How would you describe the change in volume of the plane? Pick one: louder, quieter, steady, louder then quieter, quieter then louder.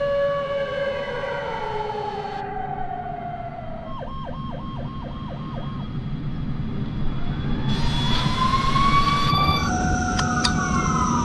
louder.